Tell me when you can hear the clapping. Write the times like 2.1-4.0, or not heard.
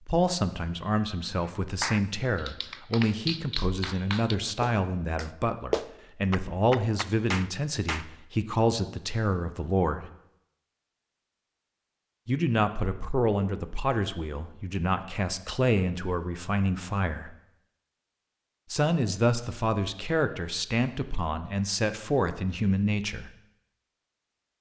1.4-8.1.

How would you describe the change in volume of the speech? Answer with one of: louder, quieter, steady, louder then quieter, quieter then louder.
steady.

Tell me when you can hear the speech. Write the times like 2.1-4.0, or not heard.
0.1-10.1, 12.2-17.4, 18.7-23.3.